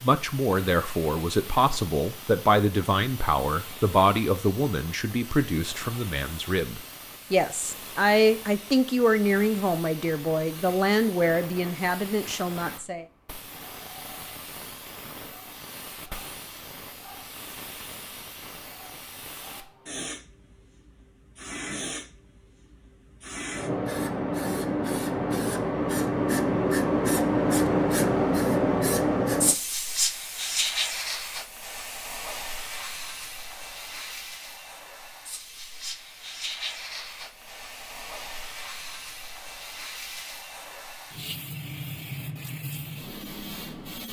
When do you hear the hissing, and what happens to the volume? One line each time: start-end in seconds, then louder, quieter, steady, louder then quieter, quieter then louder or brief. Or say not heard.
0.0-44.0 louder then quieter.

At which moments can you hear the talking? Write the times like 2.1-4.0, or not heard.
0.0-13.1.